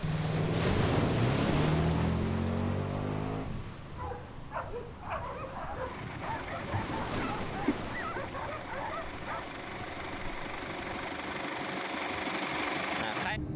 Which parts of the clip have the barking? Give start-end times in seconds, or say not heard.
4.0-9.5.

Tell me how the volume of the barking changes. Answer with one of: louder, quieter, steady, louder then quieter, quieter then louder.
steady.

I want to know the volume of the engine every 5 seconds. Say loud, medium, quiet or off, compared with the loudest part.
loud, medium, loud.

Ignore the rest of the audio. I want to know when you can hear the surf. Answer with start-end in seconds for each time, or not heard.
0.0-11.1.